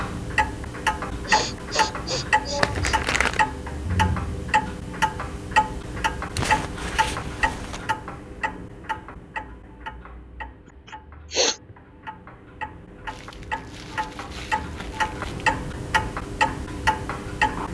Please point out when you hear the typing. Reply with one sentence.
You can't hear the typing here.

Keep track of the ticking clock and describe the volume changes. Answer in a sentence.
The volume of the ticking clock goes down, then up.